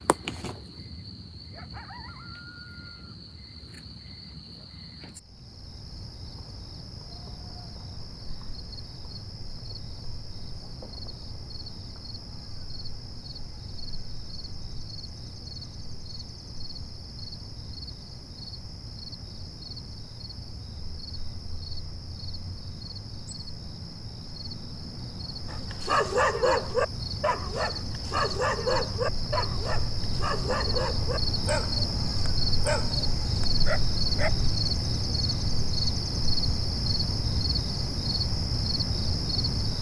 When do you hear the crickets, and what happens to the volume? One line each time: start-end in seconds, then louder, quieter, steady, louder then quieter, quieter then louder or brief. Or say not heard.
0.0-39.7 louder.